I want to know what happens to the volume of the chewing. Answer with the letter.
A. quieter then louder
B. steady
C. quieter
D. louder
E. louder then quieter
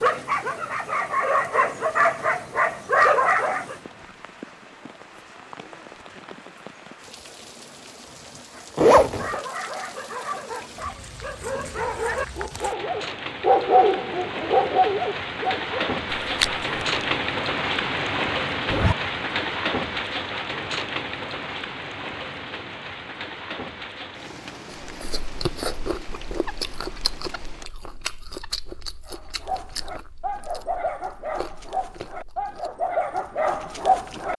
C.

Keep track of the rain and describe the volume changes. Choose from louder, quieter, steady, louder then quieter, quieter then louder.
louder then quieter.